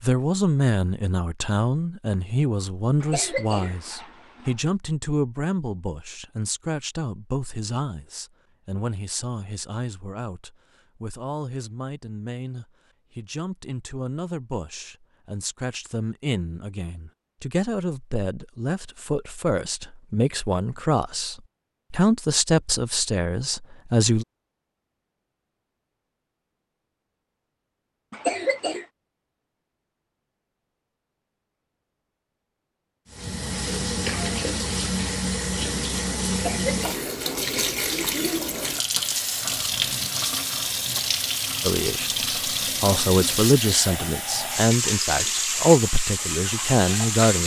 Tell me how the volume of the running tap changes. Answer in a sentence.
The loudness of the running tap stays about the same.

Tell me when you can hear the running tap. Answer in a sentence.
The running tap can be heard from 33.1 to 47.4 s.